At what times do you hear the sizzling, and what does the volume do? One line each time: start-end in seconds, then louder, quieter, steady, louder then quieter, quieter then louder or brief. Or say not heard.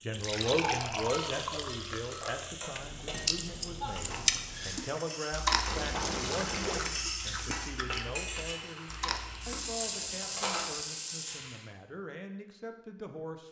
0.0-11.7 louder.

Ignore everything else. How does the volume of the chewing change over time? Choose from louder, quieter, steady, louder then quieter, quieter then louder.
quieter.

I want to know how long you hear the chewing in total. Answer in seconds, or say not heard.
7 s.